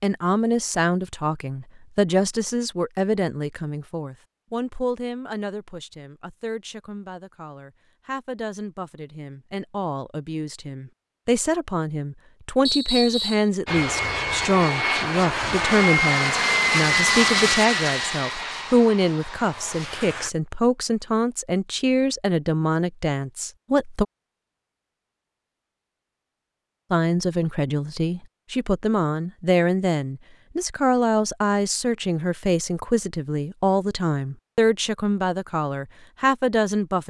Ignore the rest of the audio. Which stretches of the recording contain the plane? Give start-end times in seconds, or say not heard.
13.7-20.3.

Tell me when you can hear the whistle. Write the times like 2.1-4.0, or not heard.
12.7-13.5.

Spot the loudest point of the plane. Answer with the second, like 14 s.
17 s.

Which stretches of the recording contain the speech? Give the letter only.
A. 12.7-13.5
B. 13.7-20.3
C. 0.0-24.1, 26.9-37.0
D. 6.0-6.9
C.